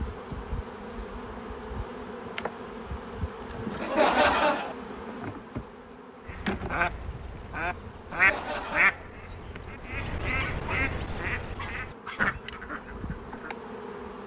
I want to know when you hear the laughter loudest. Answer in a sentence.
The loudest moment of the laughter is at 4 seconds.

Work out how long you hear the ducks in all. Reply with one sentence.
The ducks can be heard for 7 seconds in total.